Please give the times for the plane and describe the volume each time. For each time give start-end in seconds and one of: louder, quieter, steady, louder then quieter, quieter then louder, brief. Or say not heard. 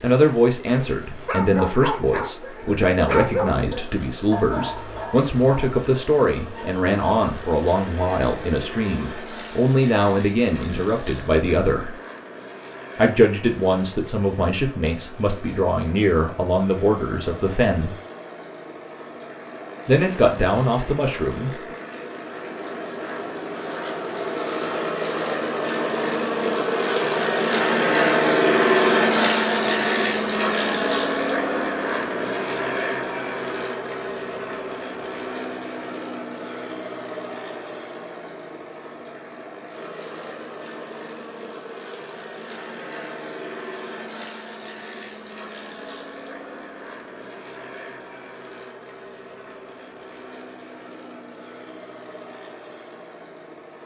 0.0-53.8 louder then quieter.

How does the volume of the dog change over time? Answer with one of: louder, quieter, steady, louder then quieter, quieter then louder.
quieter.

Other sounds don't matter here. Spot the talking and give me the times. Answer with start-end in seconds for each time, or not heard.
0.0-11.9, 12.9-17.9, 19.9-21.5.